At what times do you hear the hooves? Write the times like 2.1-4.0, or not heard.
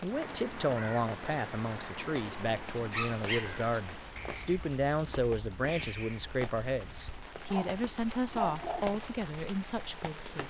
not heard.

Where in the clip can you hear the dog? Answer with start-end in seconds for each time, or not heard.
2.9-3.5, 7.5-8.8.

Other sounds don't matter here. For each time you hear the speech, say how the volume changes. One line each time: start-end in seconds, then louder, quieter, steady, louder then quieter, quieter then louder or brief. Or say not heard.
0.0-10.4 steady.